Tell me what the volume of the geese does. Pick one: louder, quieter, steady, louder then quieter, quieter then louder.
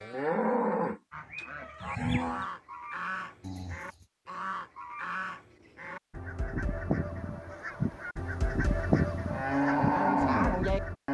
louder.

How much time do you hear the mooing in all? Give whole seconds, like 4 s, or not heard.
4 s.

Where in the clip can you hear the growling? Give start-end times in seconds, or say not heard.
3.4-4.0.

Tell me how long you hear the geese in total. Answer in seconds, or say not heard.
10 s.